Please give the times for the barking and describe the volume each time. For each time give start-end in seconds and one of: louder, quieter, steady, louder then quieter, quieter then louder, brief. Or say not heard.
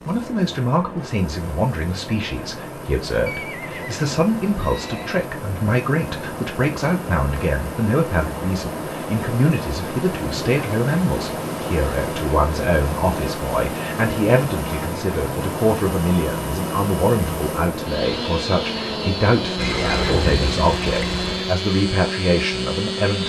not heard.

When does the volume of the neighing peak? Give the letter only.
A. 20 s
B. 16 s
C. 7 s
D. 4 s
A.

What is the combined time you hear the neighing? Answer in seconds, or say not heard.
4 s.